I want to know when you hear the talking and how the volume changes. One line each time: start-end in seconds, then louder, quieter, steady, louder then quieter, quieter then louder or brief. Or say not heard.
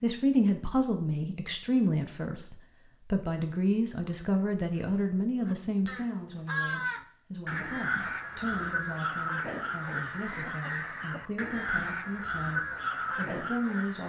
0.0-14.0 quieter.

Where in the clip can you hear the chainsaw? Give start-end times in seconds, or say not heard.
not heard.